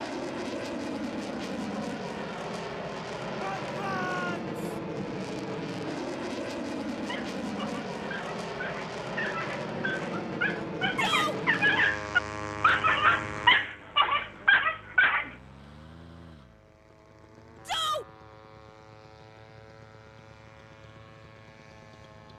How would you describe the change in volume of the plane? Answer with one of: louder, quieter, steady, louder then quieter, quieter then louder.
quieter.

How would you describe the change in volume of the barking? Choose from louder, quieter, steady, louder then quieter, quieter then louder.
louder.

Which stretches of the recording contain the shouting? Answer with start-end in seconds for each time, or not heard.
3.4-4.5, 10.9-11.4, 17.6-18.1.